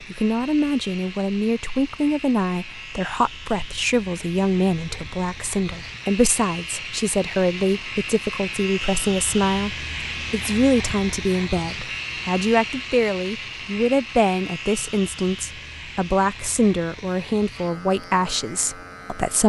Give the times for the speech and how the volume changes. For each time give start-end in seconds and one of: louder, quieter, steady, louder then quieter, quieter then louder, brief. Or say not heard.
0.0-19.4 steady.